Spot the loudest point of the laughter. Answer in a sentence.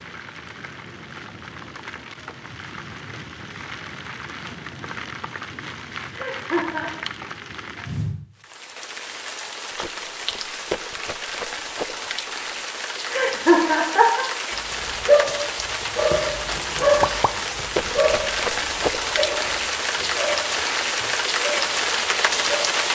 The loudest moment of the laughter is at 14 seconds.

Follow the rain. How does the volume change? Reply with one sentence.
The volume of the rain goes up.